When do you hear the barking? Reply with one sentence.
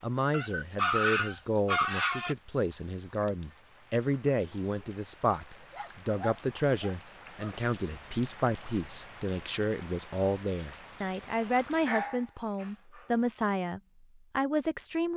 The barking can be heard from 0.3 to 2.4 s, from 5.7 to 7.5 s and from 11.7 to 13.3 s.